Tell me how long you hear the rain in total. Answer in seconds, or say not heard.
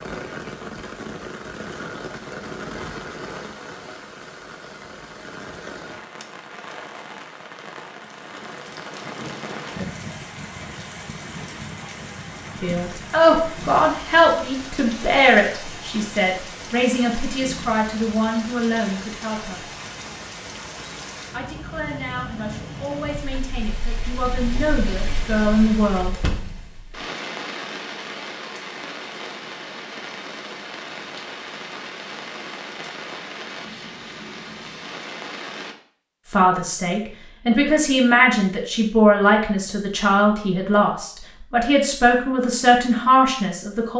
36 s.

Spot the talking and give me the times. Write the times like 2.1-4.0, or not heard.
12.6-19.6, 21.3-26.2, 36.3-43.9.